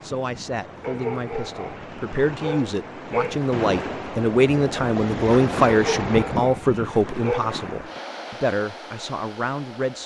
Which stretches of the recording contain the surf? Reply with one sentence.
You can hear the surf from 0.0 to 10.0 s.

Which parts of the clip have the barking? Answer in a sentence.
You can hear the barking from 0.8 to 3.4 s and from 5.7 to 7.5 s.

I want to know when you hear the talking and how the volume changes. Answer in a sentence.
The talking can be heard from 0.0 to 10.0 s, getting louder then quieter.